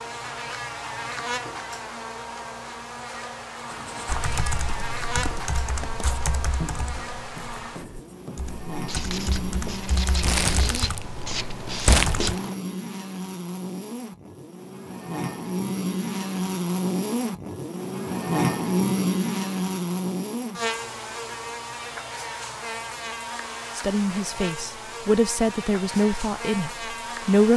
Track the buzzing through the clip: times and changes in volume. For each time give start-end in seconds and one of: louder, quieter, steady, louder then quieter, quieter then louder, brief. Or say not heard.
0.0-27.5 louder then quieter.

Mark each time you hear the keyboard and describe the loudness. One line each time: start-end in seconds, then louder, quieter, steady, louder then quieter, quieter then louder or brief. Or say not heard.
4.0-12.3 quieter then louder.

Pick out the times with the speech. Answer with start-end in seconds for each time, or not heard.
23.8-27.5.